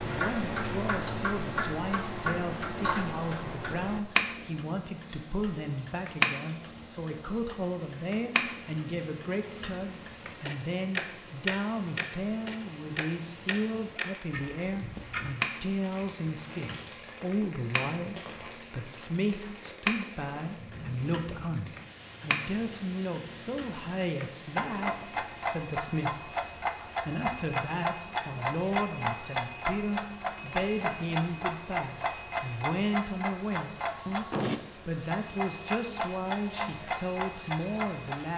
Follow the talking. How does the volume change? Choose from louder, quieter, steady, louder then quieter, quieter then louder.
steady.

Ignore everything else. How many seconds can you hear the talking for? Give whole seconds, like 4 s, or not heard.
38 s.